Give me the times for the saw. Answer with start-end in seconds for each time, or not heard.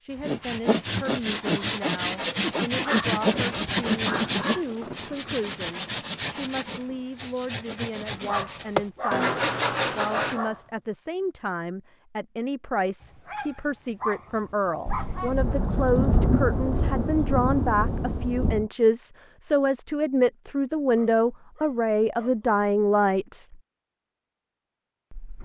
0.1-10.4.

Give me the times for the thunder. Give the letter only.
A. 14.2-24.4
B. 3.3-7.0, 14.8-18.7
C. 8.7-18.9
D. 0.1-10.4
B.